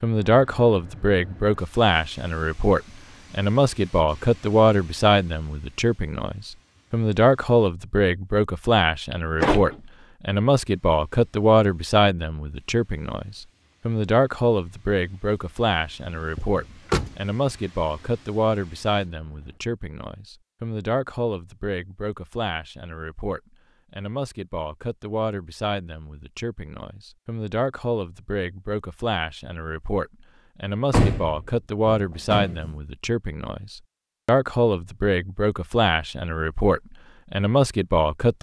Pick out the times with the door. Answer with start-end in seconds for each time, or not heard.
9.1-9.8, 16.4-17.1, 30.9-32.7.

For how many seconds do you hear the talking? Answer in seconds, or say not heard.
38 s.